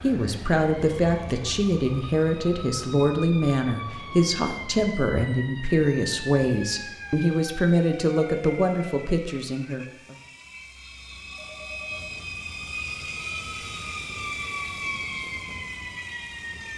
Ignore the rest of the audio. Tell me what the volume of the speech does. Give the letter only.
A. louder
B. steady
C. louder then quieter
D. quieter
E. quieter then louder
B.